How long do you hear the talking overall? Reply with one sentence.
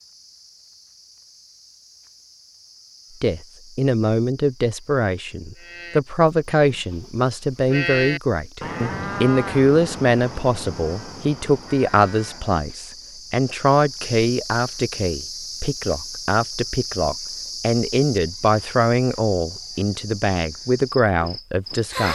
The talking can be heard for 19 seconds in total.